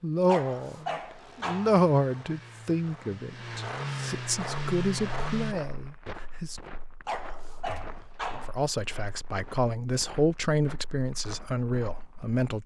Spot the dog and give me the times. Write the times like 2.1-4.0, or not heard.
0.2-1.8, 7.0-8.6.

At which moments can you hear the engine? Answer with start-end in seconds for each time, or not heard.
0.0-5.5.